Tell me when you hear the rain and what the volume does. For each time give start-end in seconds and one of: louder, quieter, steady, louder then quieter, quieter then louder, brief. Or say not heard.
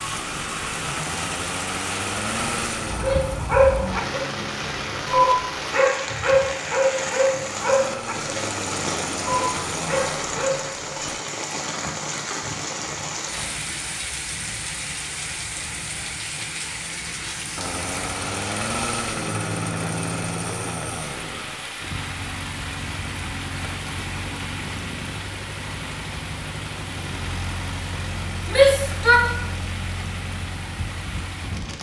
0.0-31.7 quieter.